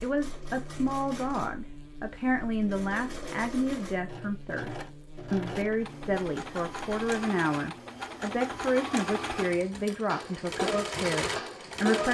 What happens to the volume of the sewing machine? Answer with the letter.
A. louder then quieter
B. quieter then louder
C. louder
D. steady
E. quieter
C.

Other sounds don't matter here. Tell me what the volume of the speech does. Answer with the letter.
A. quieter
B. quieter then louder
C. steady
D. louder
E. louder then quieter
C.